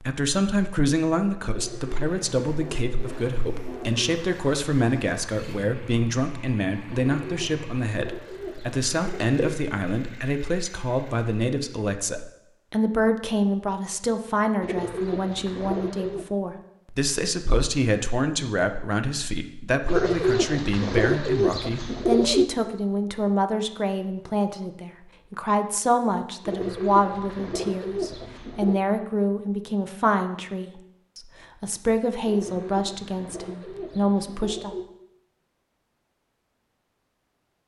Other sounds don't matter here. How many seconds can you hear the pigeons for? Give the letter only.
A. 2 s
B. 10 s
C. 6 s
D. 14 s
D.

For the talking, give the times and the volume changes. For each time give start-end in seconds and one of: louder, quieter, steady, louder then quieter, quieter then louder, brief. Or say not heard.
0.0-34.8 steady.